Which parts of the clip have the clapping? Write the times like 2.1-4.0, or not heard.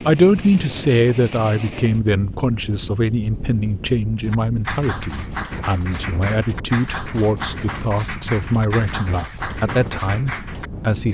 4.2-10.7.